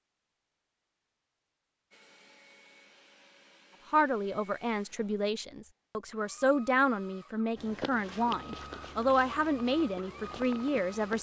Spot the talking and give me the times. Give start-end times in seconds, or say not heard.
3.9-11.1.